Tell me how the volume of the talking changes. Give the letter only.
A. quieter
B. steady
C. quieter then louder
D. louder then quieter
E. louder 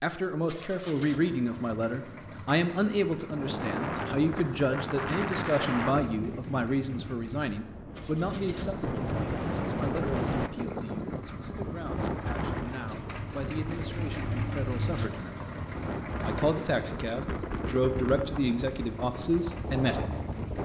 C.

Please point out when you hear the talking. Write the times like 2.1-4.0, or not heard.
0.0-15.4, 16.2-20.1.